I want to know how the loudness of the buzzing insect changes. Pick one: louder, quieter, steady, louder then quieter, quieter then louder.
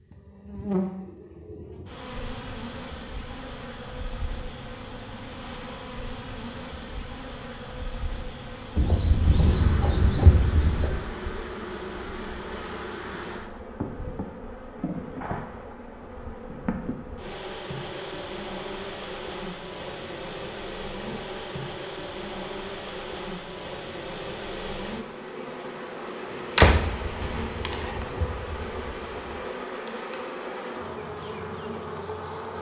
steady.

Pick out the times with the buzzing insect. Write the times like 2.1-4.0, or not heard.
0.0-32.5.